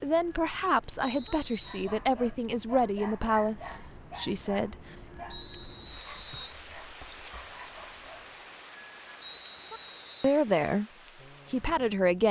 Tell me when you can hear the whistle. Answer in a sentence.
You can hear the whistle from 1.0 to 1.9 s, from 5.3 to 6.6 s and from 9.2 to 10.3 s.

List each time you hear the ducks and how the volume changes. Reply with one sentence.
The ducks can't be heard in this clip.